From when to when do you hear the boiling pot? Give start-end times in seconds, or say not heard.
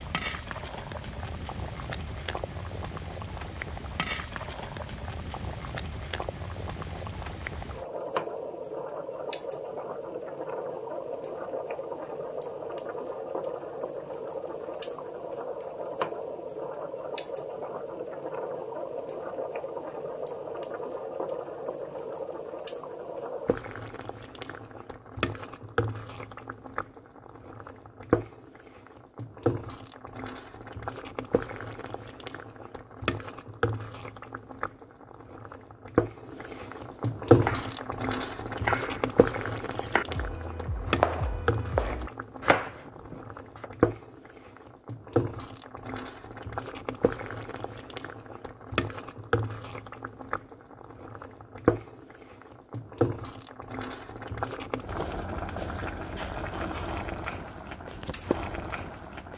0.0-59.3.